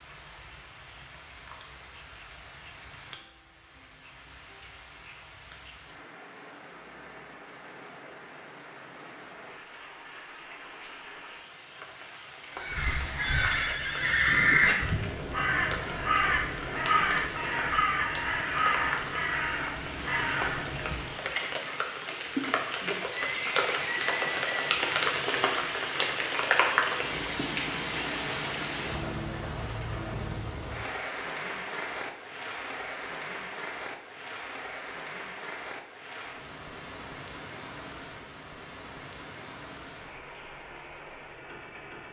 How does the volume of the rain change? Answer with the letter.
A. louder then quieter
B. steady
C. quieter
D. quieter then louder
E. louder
A.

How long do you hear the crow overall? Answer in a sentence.
The crow can be heard for 9 seconds in total.